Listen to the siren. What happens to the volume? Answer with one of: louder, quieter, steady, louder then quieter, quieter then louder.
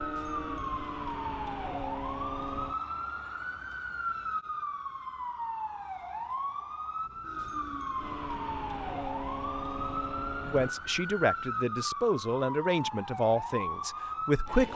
steady.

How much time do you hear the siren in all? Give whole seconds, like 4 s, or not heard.
15 s.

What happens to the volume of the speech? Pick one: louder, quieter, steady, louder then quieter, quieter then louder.
quieter.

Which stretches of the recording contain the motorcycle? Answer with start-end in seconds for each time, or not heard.
0.0-2.8, 8.0-10.8.